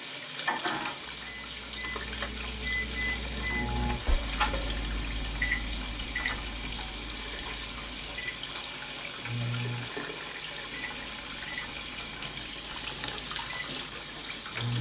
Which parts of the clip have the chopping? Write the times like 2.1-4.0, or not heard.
not heard.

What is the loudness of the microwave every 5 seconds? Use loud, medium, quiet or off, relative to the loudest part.
loud, loud, medium.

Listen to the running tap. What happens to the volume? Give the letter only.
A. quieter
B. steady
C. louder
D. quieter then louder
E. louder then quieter
B.